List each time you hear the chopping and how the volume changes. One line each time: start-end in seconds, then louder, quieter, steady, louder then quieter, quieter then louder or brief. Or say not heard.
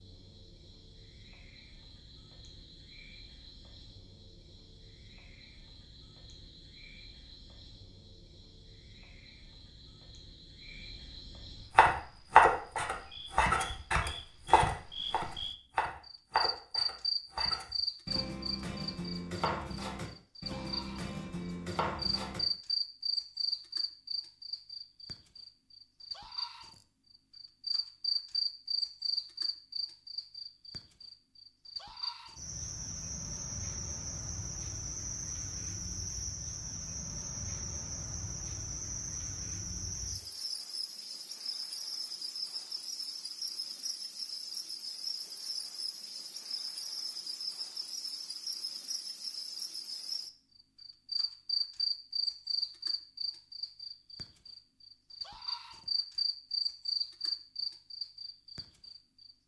11.8-22.4 quieter.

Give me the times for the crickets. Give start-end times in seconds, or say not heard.
0.0-59.4.